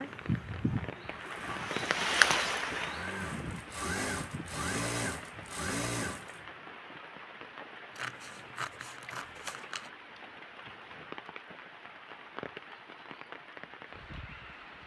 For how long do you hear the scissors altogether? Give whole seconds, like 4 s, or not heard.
2 s.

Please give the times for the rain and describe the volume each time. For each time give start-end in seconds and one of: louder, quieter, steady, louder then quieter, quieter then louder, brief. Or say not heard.
0.0-14.8 quieter.